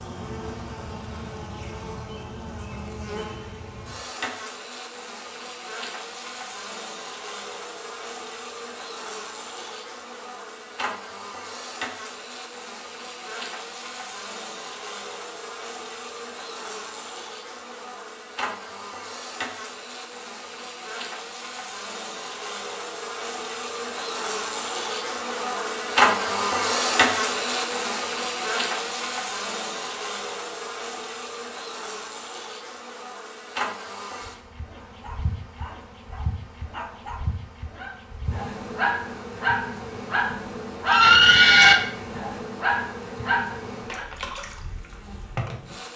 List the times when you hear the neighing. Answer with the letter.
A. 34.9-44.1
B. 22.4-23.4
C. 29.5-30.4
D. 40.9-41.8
D.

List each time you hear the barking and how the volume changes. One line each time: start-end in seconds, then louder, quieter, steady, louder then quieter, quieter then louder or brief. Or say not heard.
34.9-44.1 louder.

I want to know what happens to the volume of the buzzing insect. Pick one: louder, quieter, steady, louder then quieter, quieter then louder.
louder then quieter.